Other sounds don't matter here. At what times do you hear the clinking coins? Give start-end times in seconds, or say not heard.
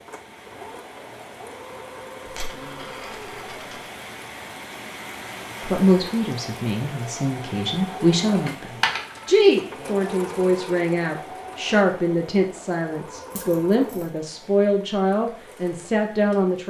2.2-3.9, 8.4-9.3, 13.3-14.2.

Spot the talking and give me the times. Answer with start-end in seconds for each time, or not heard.
5.6-16.6.